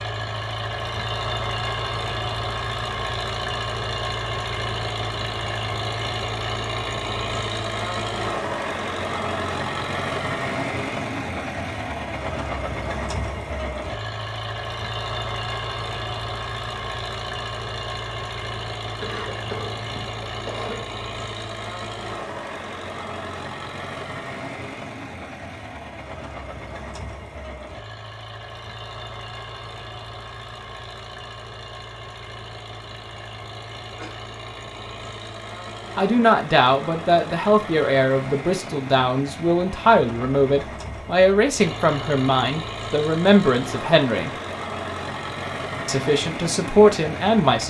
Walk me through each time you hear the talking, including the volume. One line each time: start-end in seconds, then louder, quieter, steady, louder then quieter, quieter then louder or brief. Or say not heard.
36.0-44.3 steady
45.9-47.6 brief.